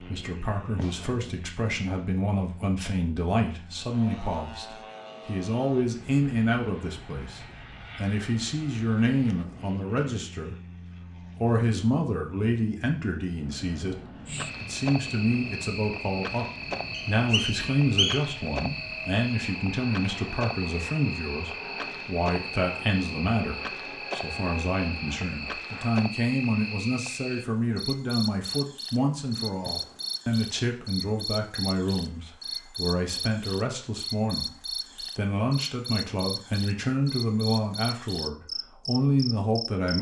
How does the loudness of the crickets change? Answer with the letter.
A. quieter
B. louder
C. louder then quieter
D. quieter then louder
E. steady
E.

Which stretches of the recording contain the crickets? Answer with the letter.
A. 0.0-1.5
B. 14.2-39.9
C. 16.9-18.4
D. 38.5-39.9
B.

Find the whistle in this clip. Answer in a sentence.
The whistle can be heard from 16.9 to 18.4 s.